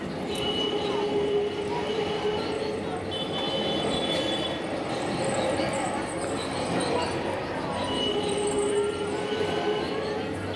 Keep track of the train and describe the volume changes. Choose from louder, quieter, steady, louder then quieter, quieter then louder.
steady.